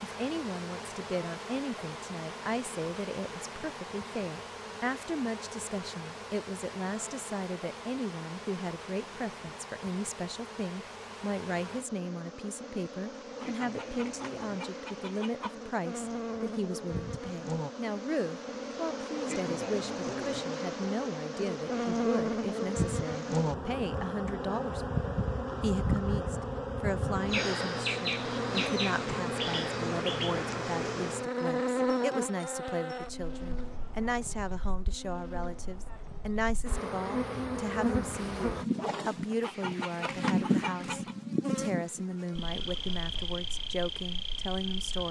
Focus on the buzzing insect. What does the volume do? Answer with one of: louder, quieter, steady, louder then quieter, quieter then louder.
louder.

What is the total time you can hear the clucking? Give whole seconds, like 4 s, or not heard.
4 s.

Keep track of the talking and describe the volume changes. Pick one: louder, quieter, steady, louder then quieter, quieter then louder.
steady.